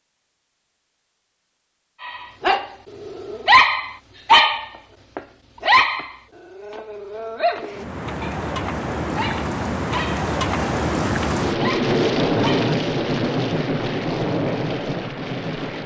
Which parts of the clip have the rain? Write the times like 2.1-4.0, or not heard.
7.6-15.8.